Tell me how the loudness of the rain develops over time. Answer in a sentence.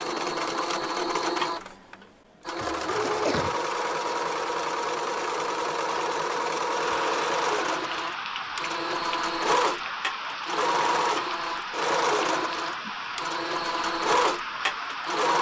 The loudness of the rain stays about the same.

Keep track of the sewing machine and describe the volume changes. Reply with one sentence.
The volume of the sewing machine stays about the same.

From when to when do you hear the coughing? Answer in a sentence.
You can hear the coughing from 2.6 to 3.5 s.